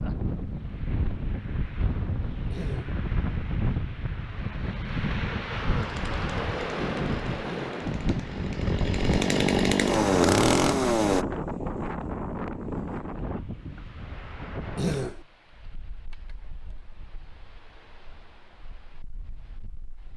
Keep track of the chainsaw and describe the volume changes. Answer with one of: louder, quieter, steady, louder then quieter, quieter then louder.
louder.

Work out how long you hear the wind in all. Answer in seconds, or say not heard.
20 s.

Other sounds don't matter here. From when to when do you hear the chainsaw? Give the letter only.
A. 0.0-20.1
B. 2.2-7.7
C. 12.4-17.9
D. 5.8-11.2
D.